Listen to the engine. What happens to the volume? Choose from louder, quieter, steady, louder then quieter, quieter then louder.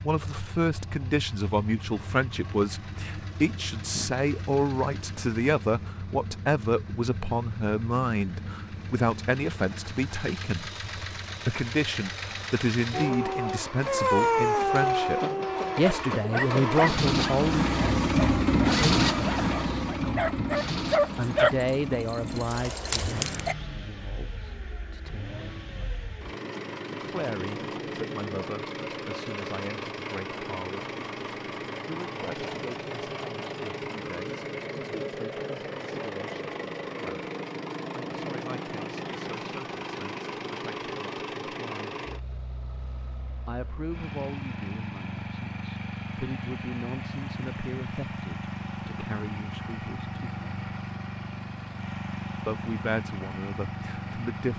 louder then quieter.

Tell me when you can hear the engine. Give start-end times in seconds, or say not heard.
0.0-54.5.